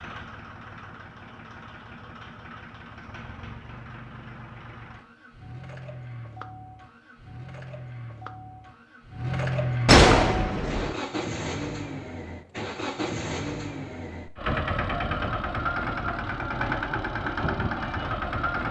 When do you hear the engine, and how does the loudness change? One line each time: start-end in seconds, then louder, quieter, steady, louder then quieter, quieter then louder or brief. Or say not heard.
0.0-18.6 louder.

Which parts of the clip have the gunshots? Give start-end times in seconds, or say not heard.
9.8-10.9.